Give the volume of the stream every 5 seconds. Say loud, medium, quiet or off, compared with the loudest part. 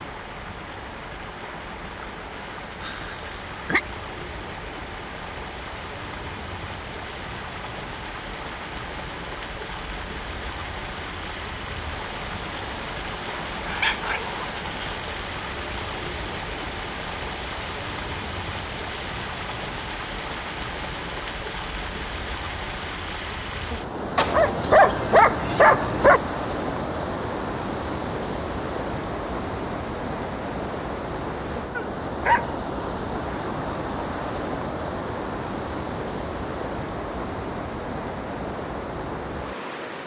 medium, medium, loud, loud, loud, loud, loud, loud.